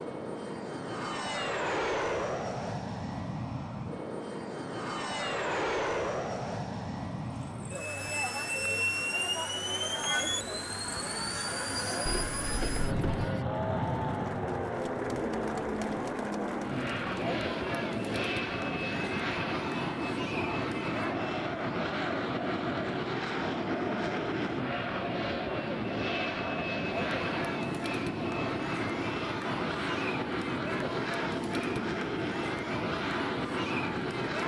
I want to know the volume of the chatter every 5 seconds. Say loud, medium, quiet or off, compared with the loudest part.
off, loud, loud, loud, loud, loud, loud.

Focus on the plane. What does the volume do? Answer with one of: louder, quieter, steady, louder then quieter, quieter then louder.
steady.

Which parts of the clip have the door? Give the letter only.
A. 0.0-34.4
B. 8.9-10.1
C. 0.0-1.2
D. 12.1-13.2
D.